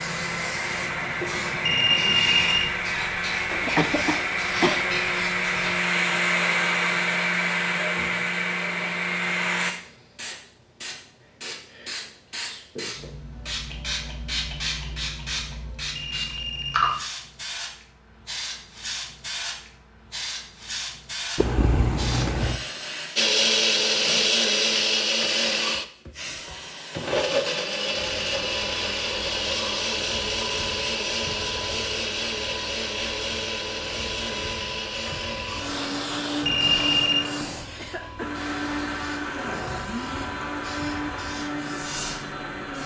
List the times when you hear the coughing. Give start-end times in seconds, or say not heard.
3.5-5.0, 21.4-22.6, 37.8-38.4.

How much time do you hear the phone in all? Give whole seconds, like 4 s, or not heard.
3 s.